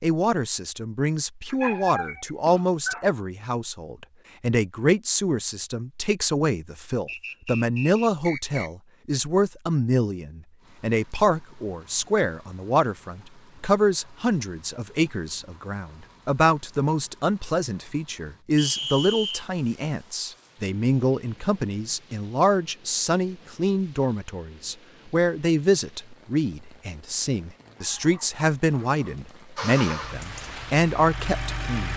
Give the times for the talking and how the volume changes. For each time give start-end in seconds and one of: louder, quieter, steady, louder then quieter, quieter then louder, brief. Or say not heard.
0.0-31.9 steady.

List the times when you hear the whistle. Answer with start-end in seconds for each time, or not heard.
7.0-8.7, 18.6-19.4.